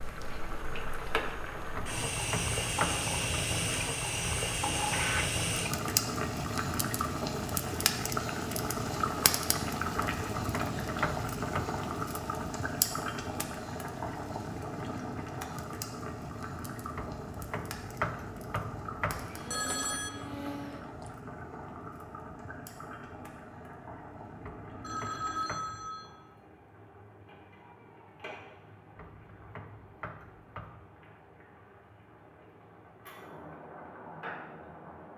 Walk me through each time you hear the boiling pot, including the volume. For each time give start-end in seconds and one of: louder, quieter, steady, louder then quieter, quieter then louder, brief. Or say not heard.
0.0-35.1 quieter.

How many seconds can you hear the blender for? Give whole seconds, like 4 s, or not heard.
2 s.